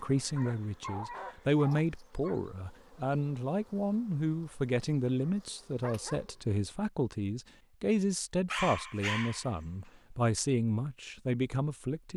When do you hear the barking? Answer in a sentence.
You can hear the barking from 0.3 to 2.4 s, from 5.2 to 6.6 s and from 8.5 to 9.5 s.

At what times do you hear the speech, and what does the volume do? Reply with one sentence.
The speech can be heard from 0.0 to 12.1 s, at a steady volume.